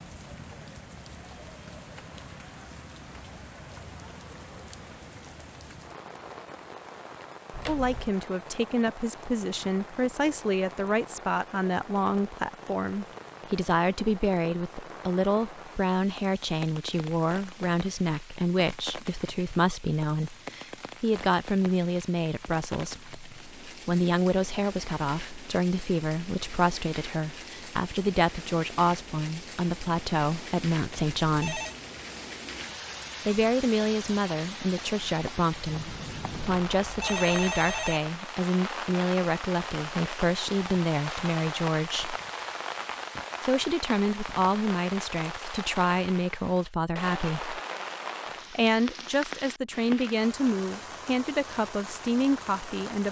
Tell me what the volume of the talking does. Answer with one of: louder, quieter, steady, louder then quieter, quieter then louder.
steady.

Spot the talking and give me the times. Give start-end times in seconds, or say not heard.
7.7-31.6, 33.2-42.1, 43.4-47.6, 48.5-53.0.